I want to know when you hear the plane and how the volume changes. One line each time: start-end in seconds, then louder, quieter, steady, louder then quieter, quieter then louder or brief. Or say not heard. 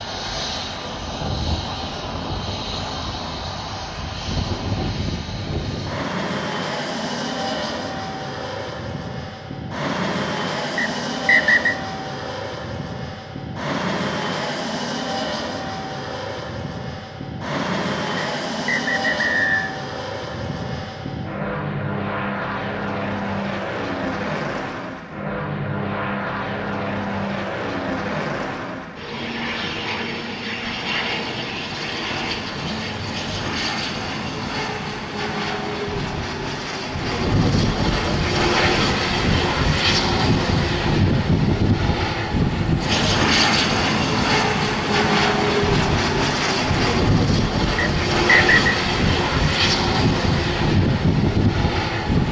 0.0-52.2 louder.